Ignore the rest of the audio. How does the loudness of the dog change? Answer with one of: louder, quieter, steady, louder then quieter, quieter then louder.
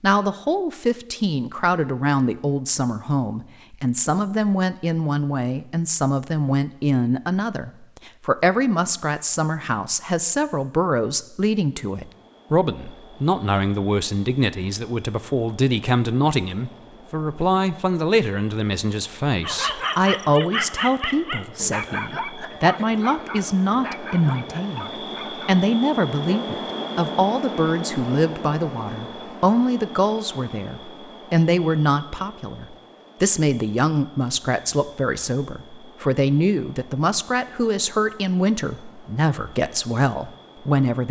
quieter.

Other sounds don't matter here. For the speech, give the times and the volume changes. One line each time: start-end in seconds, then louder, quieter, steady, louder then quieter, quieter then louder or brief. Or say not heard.
0.0-41.0 steady.